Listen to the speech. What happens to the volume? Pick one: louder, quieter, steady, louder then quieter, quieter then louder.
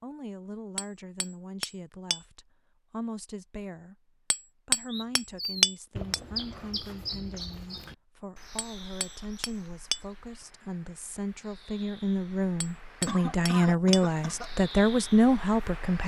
louder.